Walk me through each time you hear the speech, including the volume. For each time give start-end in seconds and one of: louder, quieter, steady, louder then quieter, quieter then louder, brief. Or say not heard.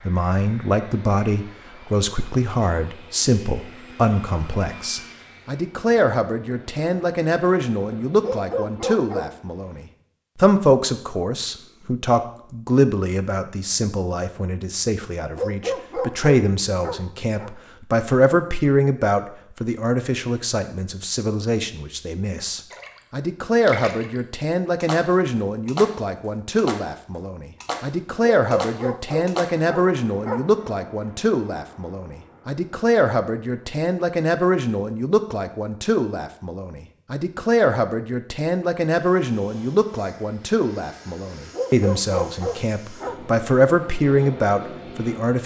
0.1-45.4 steady.